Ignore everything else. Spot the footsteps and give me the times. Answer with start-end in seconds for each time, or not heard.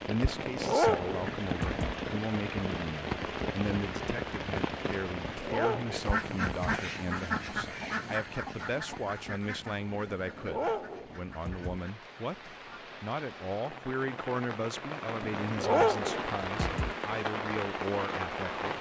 not heard.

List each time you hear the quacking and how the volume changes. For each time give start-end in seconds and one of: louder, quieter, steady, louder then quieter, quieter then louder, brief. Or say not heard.
5.9-12.8 quieter.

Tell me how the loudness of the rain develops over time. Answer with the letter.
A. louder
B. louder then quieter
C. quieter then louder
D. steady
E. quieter
C.